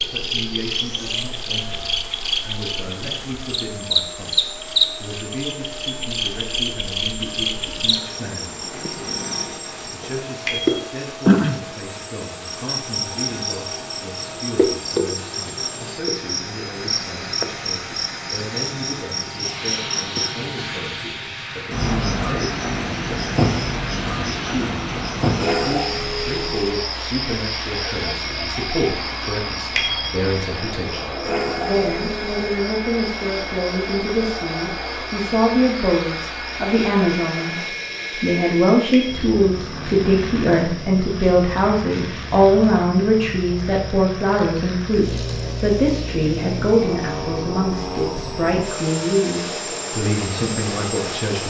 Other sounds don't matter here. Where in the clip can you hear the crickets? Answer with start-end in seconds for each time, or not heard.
0.0-51.4.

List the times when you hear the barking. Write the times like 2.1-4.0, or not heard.
not heard.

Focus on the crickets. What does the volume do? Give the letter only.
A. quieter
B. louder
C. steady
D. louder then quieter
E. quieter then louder
A.